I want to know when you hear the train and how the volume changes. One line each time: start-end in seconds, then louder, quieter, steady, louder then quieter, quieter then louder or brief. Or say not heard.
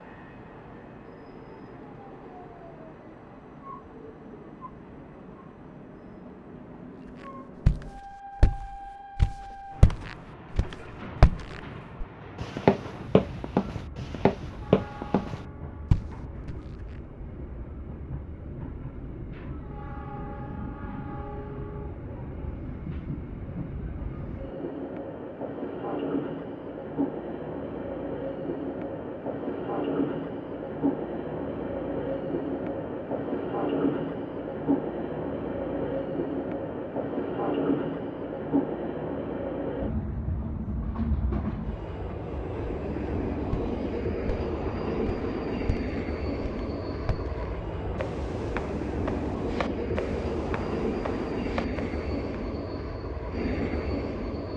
0.0-54.5 louder.